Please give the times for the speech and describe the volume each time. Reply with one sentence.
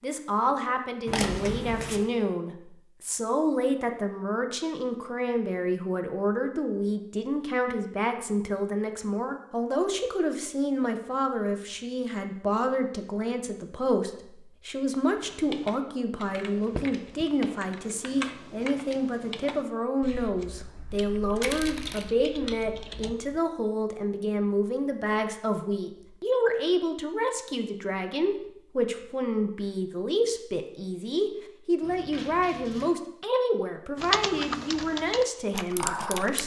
The speech can be heard from 0.0 to 36.4 s, at a steady volume.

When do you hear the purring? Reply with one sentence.
You can't hear the purring here.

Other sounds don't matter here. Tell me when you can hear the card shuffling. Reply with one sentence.
The card shuffling can be heard from 1.1 to 2.0 s, from 21.4 to 22.1 s and from 31.8 to 32.9 s.